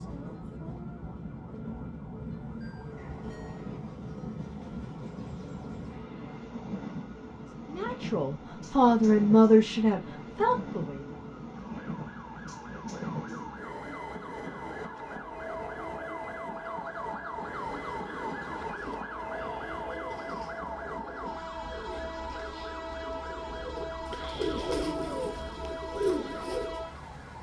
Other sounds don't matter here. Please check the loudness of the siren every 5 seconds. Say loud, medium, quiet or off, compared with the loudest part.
medium, medium, medium, loud, loud, medium.